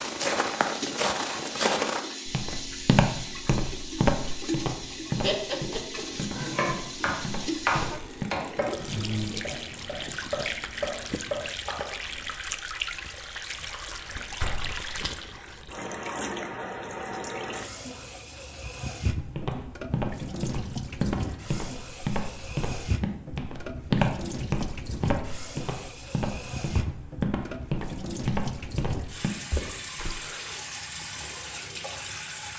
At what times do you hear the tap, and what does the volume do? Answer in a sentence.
You can hear the tap from 0.0 to 32.5 s, at a steady volume.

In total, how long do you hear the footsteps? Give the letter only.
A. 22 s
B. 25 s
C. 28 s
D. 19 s
D.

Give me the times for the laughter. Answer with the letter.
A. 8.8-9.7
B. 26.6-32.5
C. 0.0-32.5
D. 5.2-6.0
D.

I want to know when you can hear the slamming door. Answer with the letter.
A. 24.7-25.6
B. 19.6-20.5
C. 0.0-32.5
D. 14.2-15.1
D.